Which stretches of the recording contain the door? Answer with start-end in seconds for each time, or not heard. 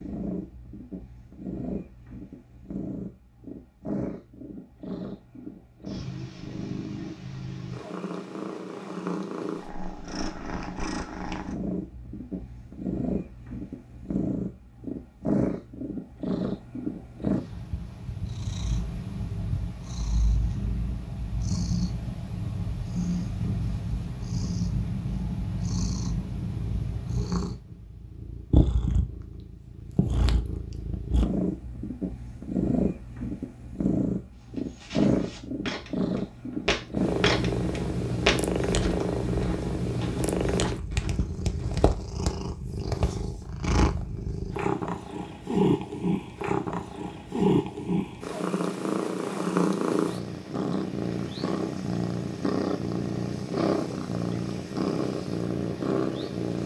not heard.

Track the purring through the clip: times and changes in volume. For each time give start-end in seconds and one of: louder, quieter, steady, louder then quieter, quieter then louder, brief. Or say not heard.
0.0-56.6 louder.